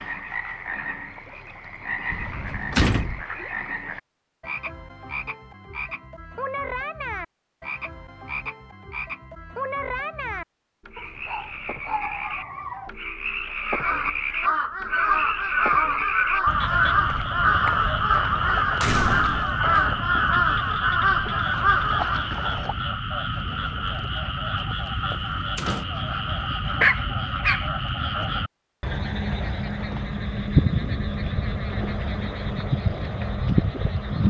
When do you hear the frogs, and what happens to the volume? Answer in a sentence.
The frogs can be heard from 0.0 to 34.2 s, getting louder.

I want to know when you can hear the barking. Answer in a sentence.
You can hear the barking from 10.9 to 12.9 s and from 25.8 to 27.6 s.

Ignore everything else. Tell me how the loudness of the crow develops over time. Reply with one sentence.
The volume of the crow stays about the same.